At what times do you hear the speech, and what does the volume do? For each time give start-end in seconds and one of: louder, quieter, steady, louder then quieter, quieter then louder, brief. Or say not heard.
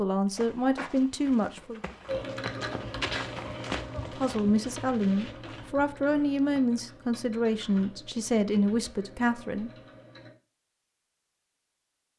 0.0-1.8 brief
4.1-9.7 steady.